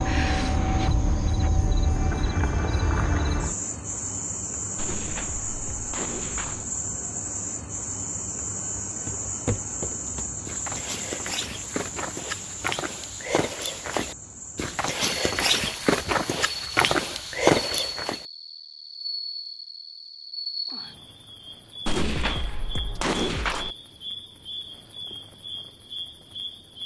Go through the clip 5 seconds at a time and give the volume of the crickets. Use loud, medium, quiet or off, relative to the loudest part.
loud, loud, medium, medium, medium, medium.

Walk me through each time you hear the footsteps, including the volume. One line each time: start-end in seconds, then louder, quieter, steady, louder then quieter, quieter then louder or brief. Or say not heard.
9.1-18.2 louder.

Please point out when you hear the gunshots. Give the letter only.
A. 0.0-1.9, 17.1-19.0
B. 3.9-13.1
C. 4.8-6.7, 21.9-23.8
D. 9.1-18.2
C.